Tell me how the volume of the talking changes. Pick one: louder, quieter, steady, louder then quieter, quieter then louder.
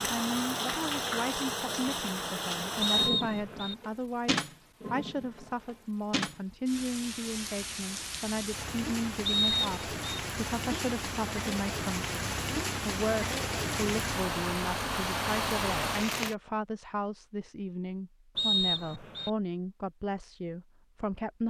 steady.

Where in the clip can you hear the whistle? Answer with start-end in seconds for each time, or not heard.
2.8-3.8, 9.2-10.2, 18.4-19.3.